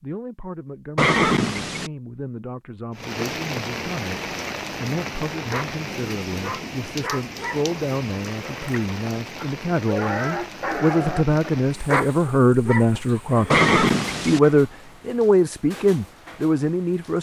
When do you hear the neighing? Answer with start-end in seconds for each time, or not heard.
0.9-1.9, 13.5-14.4.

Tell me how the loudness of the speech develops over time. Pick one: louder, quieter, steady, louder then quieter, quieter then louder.
louder.